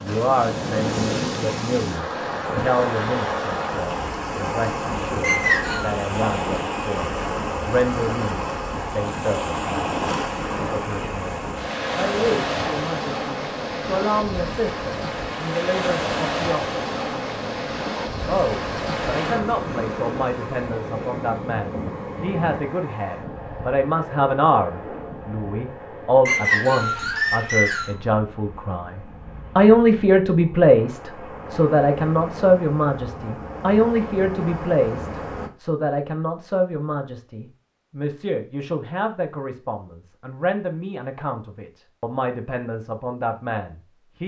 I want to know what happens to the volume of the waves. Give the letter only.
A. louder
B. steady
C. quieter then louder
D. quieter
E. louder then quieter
D.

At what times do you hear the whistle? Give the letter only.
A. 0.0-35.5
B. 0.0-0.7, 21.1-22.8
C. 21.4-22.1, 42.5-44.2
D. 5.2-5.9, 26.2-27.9
D.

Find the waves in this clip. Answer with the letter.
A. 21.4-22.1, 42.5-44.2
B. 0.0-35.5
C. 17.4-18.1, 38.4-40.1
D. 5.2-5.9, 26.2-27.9
B.